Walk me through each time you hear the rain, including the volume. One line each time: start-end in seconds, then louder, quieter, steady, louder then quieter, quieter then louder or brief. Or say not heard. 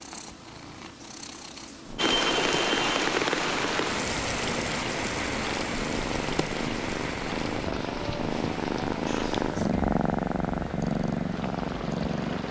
1.9-12.4 quieter.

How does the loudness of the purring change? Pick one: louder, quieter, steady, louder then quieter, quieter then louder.
louder.